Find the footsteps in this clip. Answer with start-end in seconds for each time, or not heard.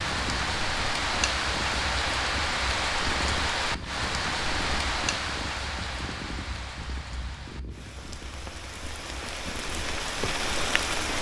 not heard.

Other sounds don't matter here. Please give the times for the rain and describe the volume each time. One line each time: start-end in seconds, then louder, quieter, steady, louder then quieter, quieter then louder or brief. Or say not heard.
0.0-11.1 quieter then louder.